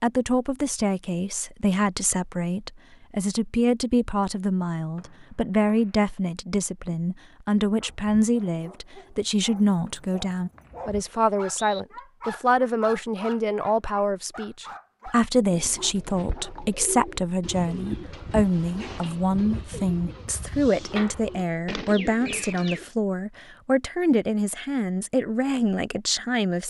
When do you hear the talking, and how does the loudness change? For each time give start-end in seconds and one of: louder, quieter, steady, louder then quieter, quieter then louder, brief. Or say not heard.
0.0-26.6 steady.